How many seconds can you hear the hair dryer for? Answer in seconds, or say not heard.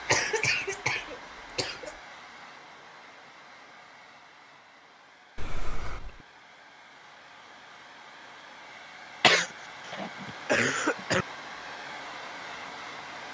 13 s.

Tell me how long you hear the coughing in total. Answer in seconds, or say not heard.
5 s.